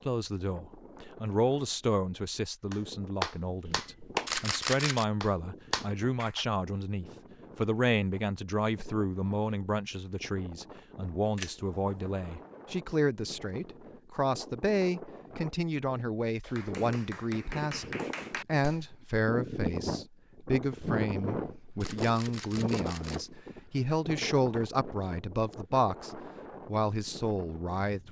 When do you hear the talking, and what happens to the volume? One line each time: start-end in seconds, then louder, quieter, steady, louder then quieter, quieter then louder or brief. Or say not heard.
0.1-28.0 steady.